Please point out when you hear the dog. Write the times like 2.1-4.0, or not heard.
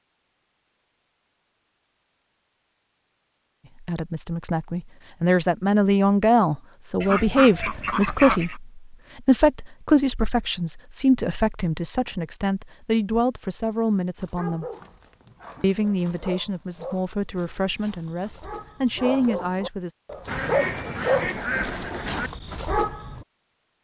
14.2-23.2.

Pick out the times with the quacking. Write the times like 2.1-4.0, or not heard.
7.0-8.6, 20.2-22.3.